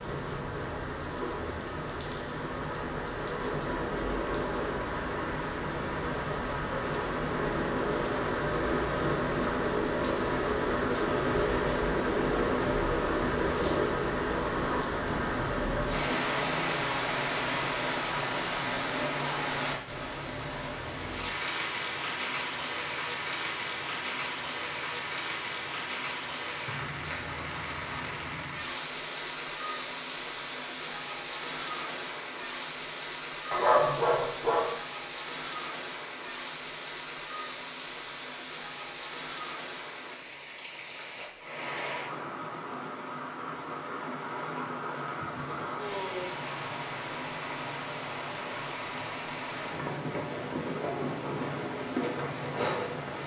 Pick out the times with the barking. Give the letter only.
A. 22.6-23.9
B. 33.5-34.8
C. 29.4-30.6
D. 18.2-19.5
B.